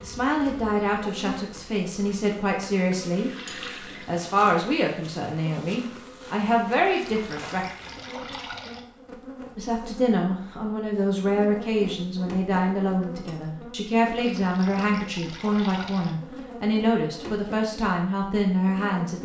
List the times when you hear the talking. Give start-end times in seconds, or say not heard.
0.0-7.7, 9.6-19.2.